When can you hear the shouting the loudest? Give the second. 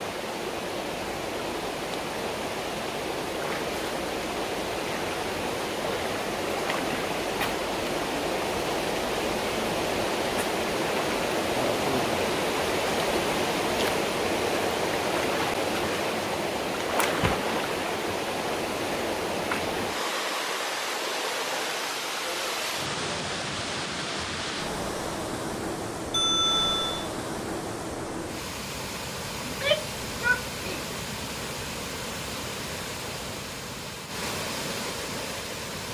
30 s.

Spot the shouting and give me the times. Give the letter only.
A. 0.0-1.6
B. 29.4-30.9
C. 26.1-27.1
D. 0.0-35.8
B.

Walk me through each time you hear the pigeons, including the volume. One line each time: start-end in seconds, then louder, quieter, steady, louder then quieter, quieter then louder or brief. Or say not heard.
not heard.